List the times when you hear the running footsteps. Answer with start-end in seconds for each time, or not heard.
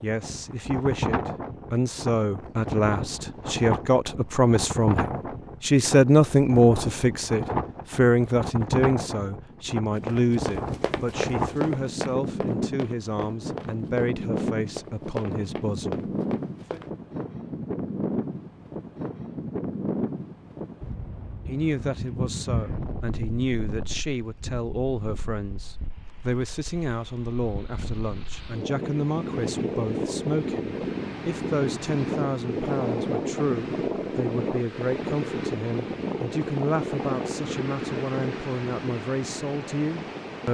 9.9-16.9.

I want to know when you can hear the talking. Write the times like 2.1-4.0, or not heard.
0.0-16.9, 21.4-40.4.